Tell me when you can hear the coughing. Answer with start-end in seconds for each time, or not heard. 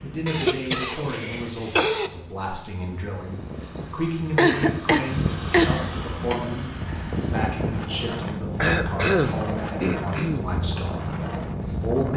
0.2-2.1, 4.3-6.4, 8.6-10.4.